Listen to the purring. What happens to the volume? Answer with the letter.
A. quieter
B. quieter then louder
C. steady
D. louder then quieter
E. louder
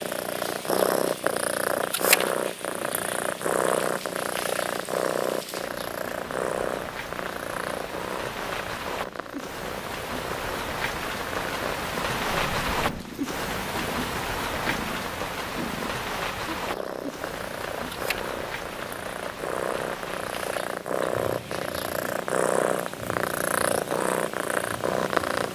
B.